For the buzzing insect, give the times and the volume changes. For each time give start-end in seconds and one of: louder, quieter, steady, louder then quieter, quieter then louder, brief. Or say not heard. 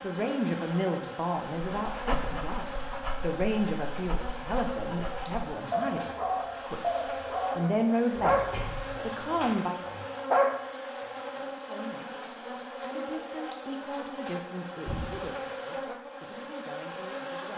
0.0-17.5 steady.